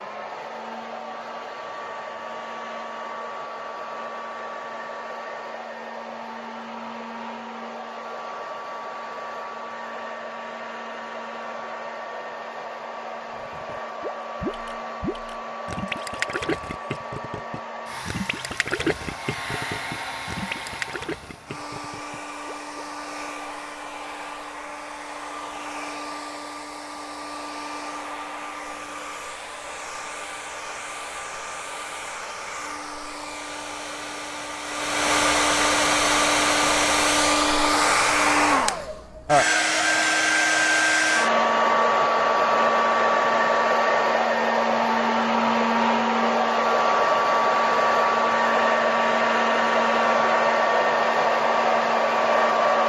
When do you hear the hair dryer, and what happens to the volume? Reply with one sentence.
You can hear the hair dryer from 0.0 to 52.8 s, getting louder.